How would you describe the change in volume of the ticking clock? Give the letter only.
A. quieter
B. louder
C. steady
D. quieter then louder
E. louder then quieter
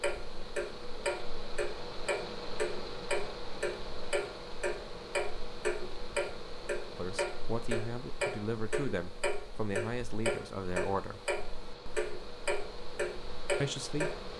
C.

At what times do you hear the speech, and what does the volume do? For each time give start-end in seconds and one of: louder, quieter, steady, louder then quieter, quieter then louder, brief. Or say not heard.
7.0-11.2 steady
13.6-14.2 brief.